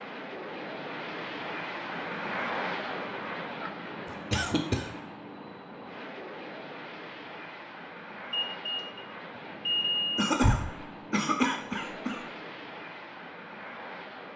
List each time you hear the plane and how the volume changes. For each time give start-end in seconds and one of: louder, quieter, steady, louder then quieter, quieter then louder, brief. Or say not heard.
0.0-14.3 quieter.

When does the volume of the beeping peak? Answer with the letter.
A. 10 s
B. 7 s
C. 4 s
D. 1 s
A.